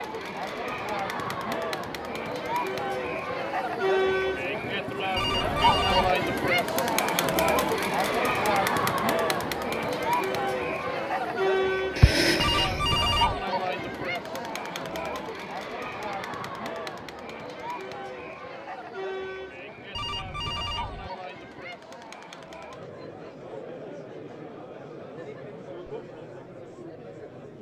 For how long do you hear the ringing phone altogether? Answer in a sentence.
The ringing phone can be heard for 3 seconds in total.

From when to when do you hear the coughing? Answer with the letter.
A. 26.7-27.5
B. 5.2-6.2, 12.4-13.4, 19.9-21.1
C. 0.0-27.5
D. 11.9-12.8
D.